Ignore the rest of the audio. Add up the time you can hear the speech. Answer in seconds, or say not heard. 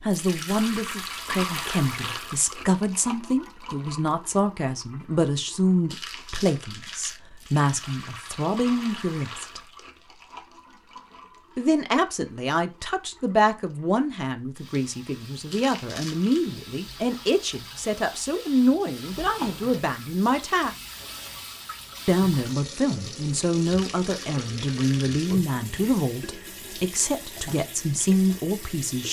26 s.